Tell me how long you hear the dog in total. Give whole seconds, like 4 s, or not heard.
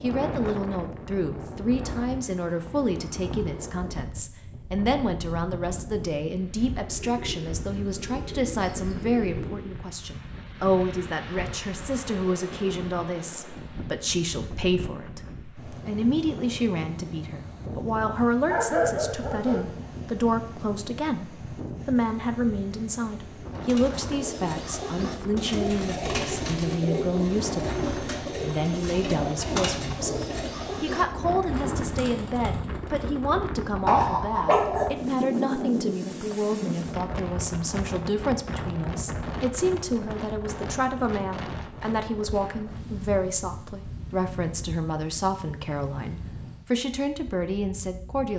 2 s.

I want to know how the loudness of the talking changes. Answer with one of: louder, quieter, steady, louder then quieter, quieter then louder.
steady.